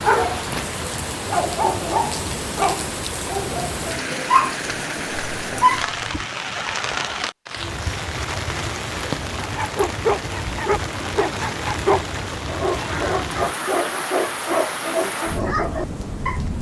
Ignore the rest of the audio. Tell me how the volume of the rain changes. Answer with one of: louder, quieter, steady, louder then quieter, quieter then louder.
steady.